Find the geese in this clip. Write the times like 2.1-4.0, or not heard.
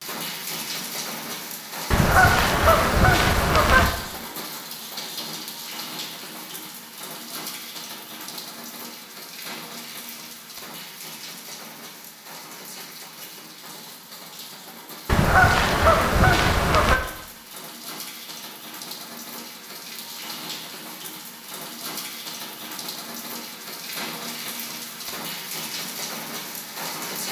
1.9-3.9, 15.1-17.0.